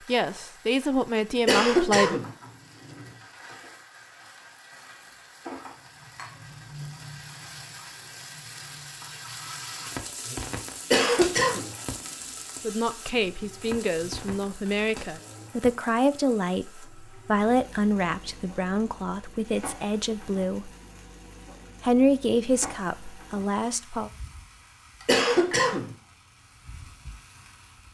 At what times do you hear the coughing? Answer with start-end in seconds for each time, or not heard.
1.4-2.3, 10.9-11.7, 25.1-25.9.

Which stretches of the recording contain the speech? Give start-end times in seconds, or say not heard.
0.1-2.2, 12.6-20.7, 21.8-24.1.